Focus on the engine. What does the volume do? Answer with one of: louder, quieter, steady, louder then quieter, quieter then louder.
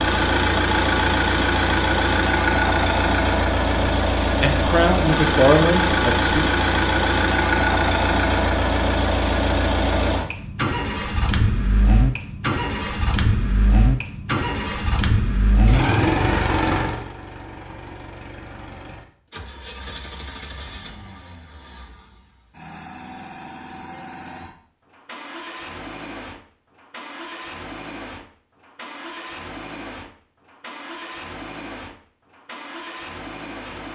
quieter.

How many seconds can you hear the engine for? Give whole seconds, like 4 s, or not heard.
34 s.